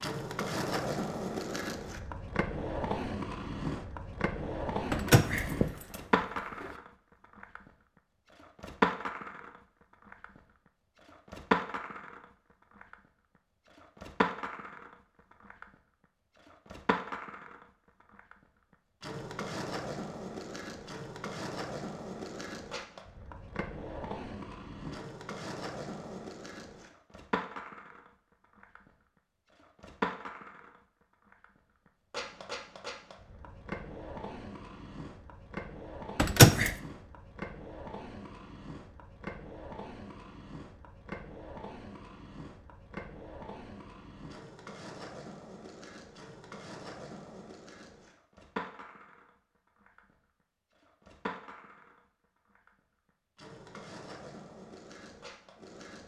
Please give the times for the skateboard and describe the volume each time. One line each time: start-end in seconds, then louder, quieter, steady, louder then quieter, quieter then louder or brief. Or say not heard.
0.0-56.0 quieter.